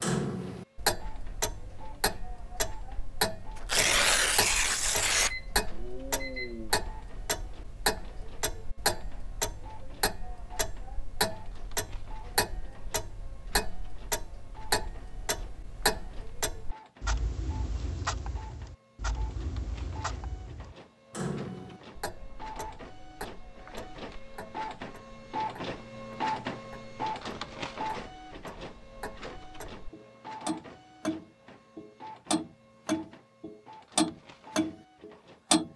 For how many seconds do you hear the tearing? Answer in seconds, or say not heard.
2 s.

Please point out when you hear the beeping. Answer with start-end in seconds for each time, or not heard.
5.2-6.8.